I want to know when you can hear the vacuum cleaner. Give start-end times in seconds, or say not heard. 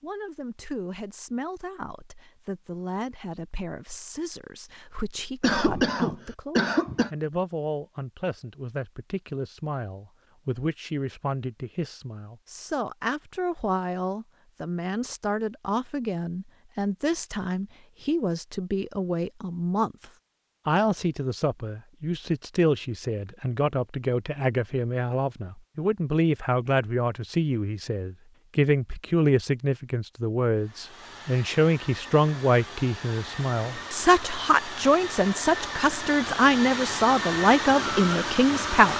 30.6-38.9.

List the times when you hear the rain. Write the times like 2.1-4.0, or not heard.
not heard.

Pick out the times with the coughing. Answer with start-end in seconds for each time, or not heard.
5.4-7.1.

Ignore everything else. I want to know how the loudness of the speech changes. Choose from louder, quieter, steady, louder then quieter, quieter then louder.
louder.